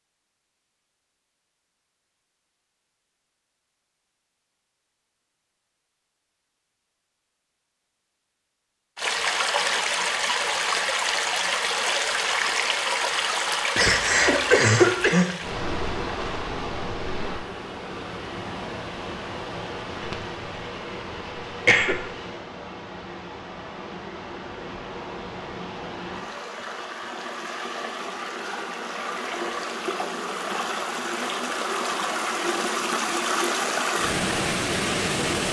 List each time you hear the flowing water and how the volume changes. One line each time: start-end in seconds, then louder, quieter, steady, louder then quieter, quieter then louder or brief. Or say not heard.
8.9-35.4 quieter then louder.